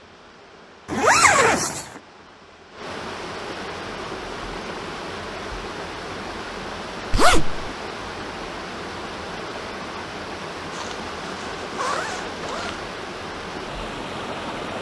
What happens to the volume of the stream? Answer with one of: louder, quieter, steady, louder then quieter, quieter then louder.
louder.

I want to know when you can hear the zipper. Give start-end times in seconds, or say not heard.
0.9-1.9, 7.1-7.7, 10.7-12.8.